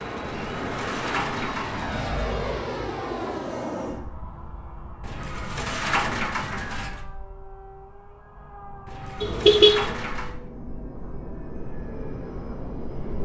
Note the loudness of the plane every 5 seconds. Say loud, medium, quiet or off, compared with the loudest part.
loud, quiet, medium.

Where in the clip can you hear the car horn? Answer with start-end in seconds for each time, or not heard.
9.2-9.9.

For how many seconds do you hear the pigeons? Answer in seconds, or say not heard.
6 s.